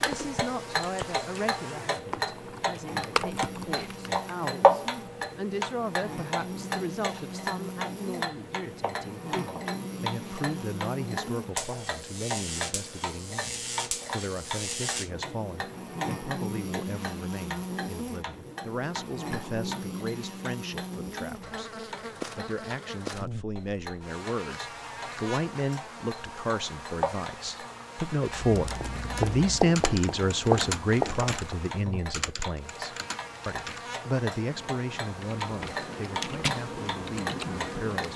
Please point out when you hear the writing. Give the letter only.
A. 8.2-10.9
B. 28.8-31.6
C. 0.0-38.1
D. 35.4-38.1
B.